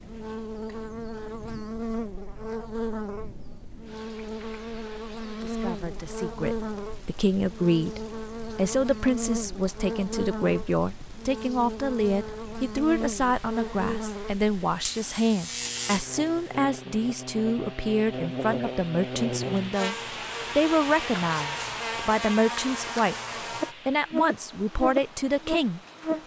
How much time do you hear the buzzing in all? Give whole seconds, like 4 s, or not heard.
26 s.